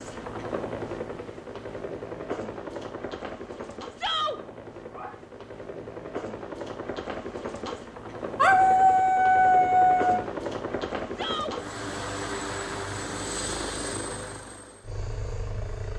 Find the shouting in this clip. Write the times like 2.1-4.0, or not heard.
4.0-4.4, 11.2-11.6.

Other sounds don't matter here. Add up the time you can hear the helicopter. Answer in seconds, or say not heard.
16 s.